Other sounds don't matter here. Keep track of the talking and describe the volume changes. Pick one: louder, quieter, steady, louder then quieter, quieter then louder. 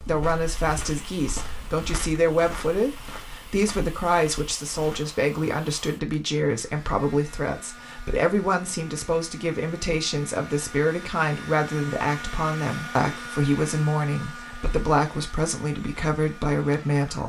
steady.